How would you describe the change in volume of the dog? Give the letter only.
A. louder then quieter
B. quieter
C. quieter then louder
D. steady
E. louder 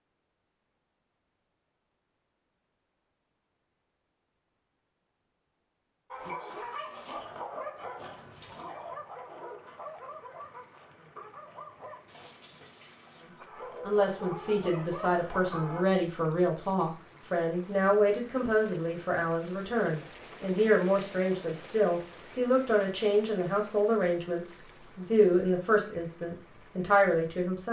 C.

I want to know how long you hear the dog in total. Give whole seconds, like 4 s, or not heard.
10 s.